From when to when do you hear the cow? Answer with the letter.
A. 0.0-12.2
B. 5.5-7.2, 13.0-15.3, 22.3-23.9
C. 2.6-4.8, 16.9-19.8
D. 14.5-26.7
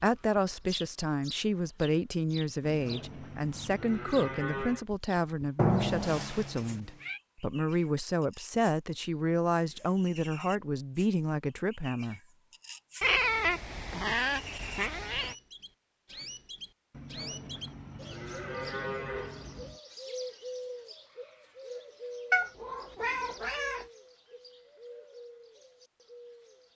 C.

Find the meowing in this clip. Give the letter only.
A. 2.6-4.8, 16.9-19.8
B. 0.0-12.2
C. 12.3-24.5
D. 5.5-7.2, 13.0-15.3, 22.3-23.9
D.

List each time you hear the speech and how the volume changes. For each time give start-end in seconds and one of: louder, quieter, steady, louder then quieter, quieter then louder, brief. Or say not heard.
0.0-12.2 steady.